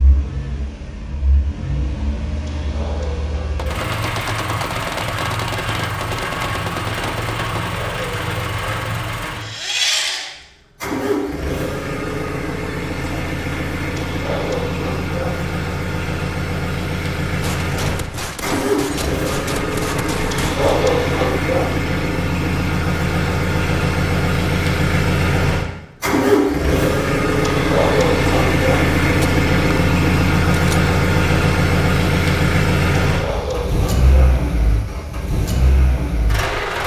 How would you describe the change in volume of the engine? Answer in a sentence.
The volume of the engine goes up.